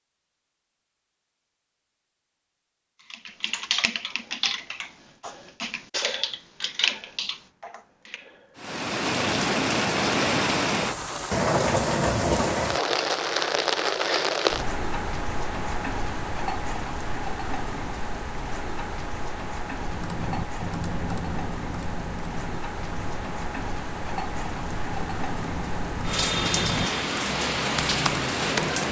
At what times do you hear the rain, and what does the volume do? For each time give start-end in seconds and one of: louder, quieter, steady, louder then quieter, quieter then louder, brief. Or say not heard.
8.6-28.8 quieter then louder.